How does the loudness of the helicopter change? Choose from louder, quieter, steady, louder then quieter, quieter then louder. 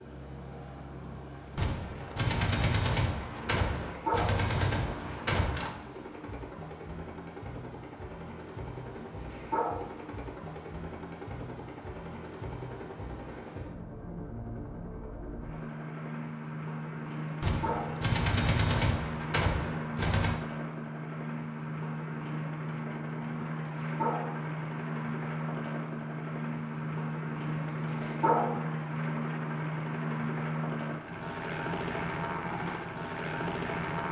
louder.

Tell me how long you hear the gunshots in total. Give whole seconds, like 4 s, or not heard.
7 s.